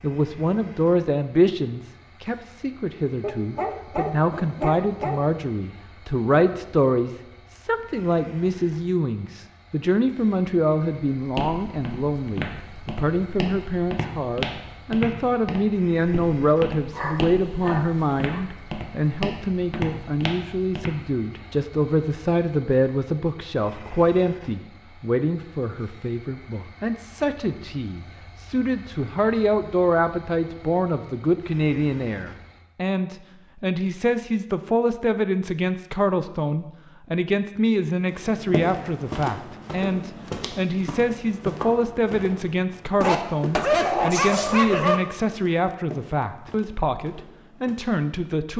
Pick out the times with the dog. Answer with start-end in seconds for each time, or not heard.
3.2-5.2, 16.9-18.4, 43.0-45.0.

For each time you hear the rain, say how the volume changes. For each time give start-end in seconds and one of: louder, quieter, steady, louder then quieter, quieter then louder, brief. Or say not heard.
not heard.